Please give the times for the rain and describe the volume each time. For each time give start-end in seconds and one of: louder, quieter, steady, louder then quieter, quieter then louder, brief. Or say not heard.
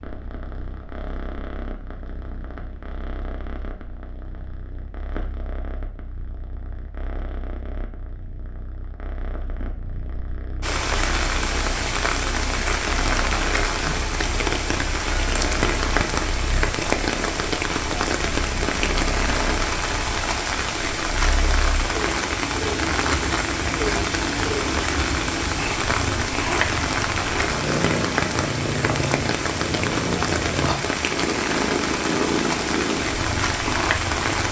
10.6-34.4 steady.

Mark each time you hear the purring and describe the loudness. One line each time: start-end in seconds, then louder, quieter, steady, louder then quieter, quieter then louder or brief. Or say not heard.
0.0-34.4 louder.